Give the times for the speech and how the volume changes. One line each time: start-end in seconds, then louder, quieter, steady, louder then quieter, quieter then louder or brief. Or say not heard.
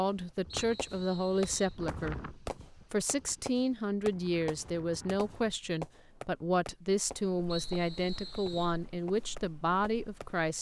0.0-10.5 steady.